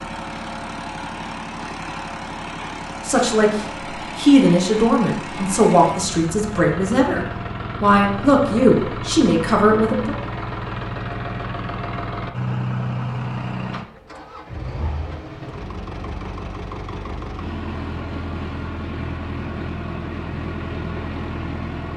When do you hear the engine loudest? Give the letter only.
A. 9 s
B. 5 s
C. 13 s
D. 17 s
C.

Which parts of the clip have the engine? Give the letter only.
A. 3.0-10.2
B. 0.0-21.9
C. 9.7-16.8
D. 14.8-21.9
B.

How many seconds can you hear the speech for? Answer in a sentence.
The speech can be heard for 7 seconds in total.